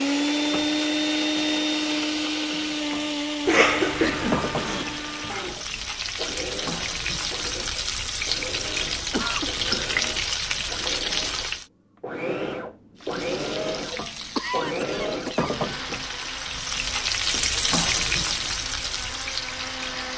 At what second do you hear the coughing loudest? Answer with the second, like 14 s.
4 s.